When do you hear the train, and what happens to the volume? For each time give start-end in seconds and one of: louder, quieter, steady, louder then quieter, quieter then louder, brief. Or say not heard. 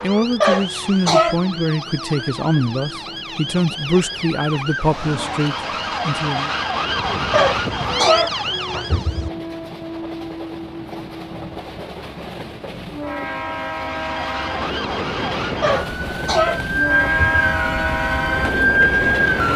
0.0-19.5 louder.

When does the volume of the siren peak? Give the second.
19 s.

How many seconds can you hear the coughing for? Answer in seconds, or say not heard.
5 s.